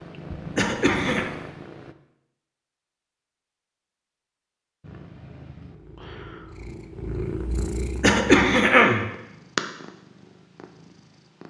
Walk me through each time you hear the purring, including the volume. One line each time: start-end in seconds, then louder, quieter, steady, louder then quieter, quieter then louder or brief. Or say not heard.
0.0-1.9 brief
4.8-11.4 louder then quieter.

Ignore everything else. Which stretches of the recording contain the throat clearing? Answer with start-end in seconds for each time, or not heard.
0.6-1.3, 8.0-9.1.